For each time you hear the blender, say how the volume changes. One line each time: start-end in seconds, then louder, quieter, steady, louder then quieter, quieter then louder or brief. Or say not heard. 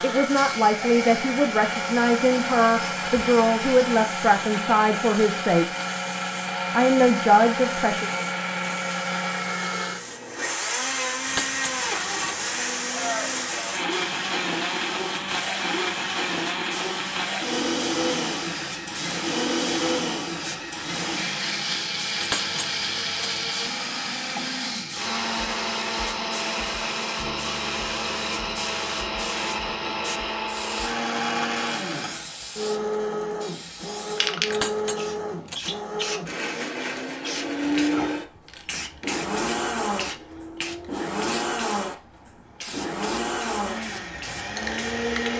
0.0-45.3 steady.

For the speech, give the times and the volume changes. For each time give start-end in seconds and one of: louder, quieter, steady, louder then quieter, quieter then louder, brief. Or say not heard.
0.0-5.7 steady
6.7-8.1 brief.